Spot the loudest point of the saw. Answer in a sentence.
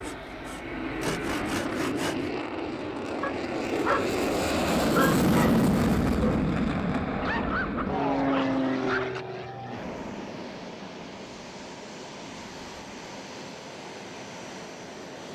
The loudest moment of the saw is at 1 second.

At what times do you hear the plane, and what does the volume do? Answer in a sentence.
The plane can be heard from 0.0 to 15.3 s, getting louder then quieter.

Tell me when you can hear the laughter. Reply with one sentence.
You can't hear the laughter here.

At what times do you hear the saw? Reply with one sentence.
The saw can be heard from 0.0 to 2.3 s.